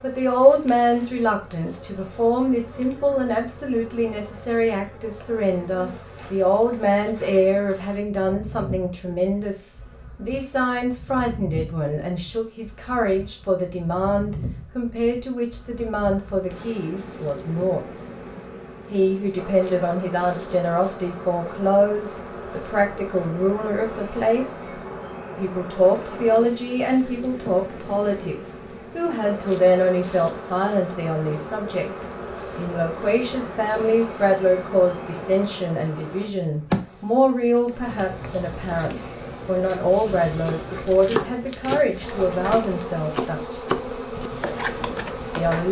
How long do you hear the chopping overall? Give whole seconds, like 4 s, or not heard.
5 s.